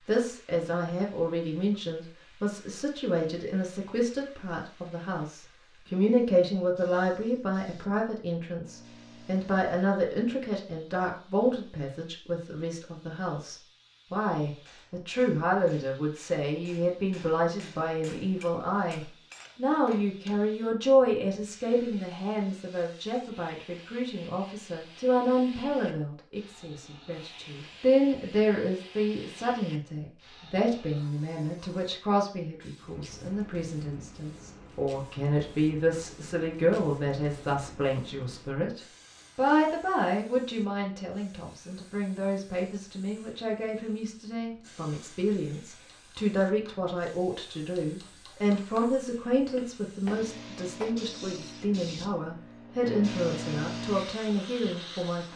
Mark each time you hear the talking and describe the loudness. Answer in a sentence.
You can hear the talking from 0.1 to 55.3 s, at a steady volume.